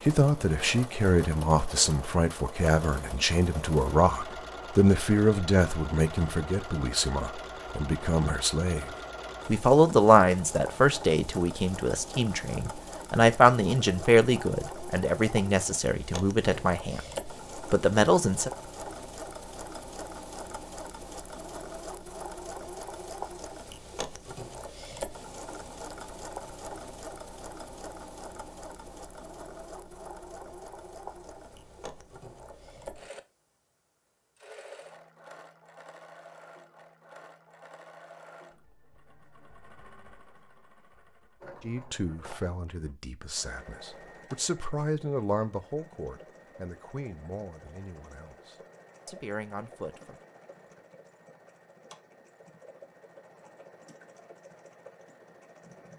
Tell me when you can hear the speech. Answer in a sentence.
The speech can be heard from 0.1 to 18.5 s and from 41.6 to 50.1 s.